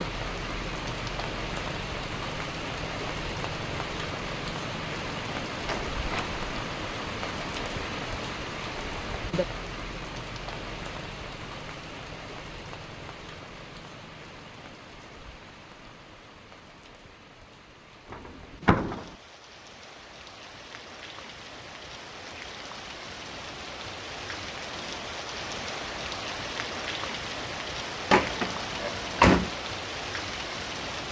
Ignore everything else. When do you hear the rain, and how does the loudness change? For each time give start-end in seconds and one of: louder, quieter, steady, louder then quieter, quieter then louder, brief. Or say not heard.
0.0-31.0 quieter then louder.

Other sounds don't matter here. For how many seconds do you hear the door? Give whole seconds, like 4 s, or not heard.
3 s.